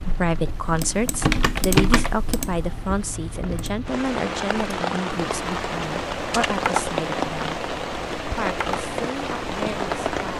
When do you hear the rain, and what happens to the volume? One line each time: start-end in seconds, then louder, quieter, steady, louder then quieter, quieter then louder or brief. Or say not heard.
0.0-10.3 louder.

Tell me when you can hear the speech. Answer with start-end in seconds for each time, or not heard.
0.0-7.6, 8.3-10.3.